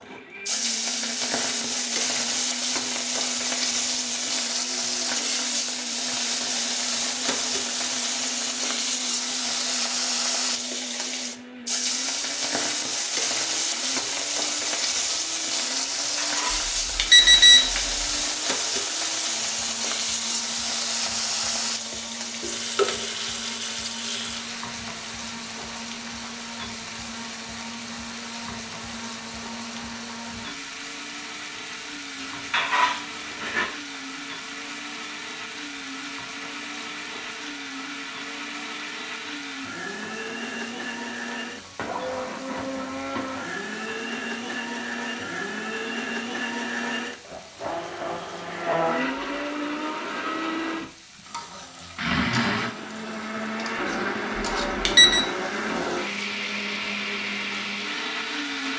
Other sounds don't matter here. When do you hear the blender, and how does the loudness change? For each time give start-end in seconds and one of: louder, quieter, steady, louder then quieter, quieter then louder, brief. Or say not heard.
0.0-58.7 louder.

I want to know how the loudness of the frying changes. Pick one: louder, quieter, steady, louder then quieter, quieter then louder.
quieter.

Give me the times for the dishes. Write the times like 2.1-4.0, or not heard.
16.0-17.6, 32.2-33.7.